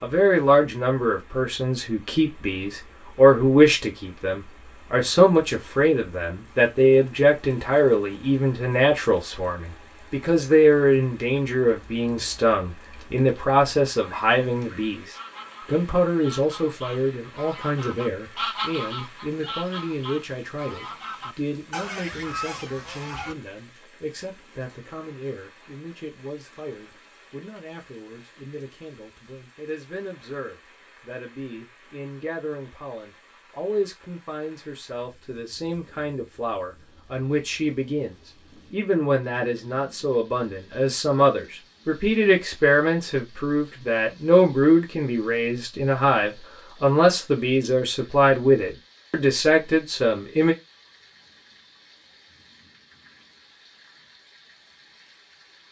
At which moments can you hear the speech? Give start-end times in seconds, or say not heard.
0.0-50.5.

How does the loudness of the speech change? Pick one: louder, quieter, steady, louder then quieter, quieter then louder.
quieter then louder.